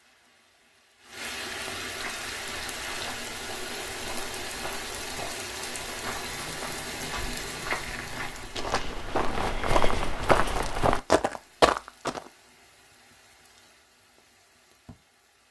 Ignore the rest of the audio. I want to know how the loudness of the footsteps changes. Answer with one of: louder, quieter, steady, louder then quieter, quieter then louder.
louder.